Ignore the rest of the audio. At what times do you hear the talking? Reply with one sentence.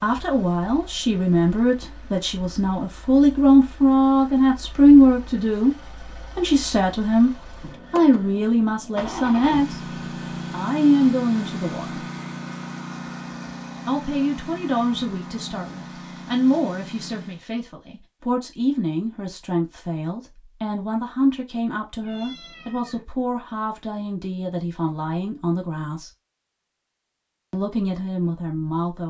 The talking can be heard from 0.0 to 9.8 s, from 10.5 to 12.1 s, from 13.8 to 26.1 s and from 27.5 to 29.0 s.